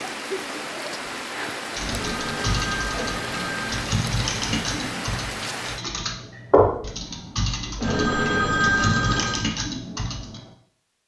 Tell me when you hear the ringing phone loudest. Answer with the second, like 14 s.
9 s.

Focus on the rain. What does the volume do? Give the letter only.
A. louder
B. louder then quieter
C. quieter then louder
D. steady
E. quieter
D.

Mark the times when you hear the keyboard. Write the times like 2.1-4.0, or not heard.
1.7-10.5.